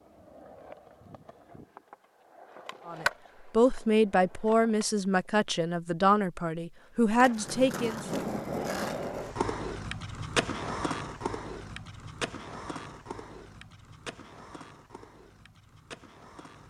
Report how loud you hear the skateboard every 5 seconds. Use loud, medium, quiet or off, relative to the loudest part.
medium, loud, loud, quiet.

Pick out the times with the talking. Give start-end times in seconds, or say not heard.
2.9-8.1.